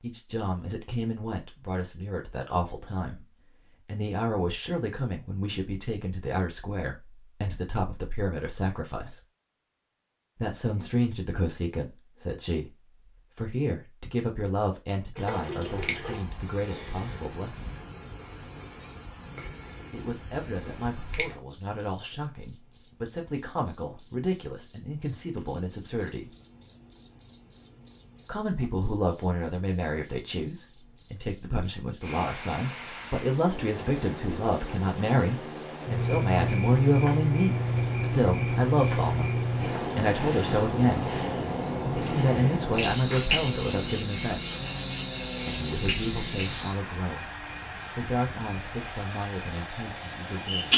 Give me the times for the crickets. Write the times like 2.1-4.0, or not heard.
15.6-50.7.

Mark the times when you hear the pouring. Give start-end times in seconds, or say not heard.
15.2-16.2.